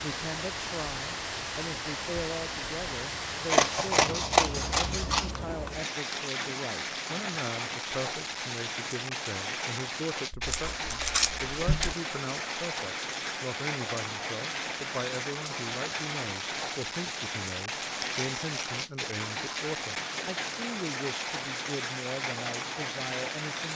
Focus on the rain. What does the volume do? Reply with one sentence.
The volume of the rain stays about the same.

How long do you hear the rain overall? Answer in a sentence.
You can hear the rain for 24 seconds altogether.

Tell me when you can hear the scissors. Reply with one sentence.
The scissors can be heard from 3.5 to 5.3 s, from 10.3 to 11.9 s and from 17.9 to 18.8 s.